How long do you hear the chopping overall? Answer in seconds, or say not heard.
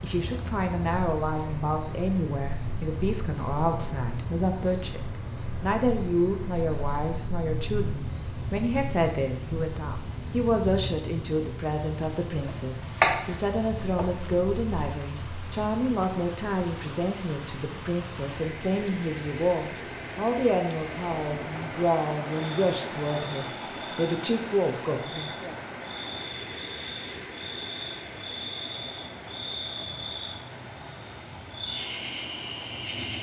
2 s.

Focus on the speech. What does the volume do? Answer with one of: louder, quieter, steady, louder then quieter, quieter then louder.
steady.